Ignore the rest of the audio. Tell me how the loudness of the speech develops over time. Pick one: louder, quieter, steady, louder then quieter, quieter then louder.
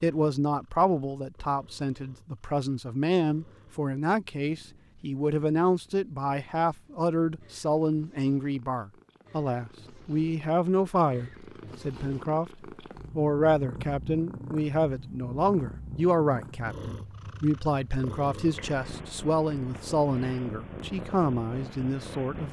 steady.